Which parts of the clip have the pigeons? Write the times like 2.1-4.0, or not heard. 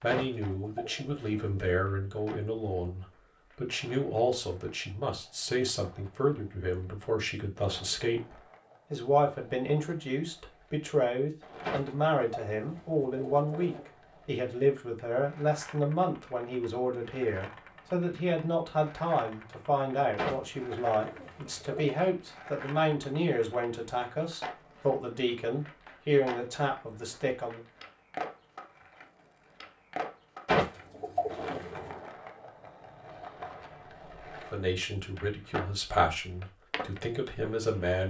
0.1-1.7, 11.6-13.8, 20.1-22.0, 30.4-32.0.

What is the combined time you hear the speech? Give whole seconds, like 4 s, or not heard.
31 s.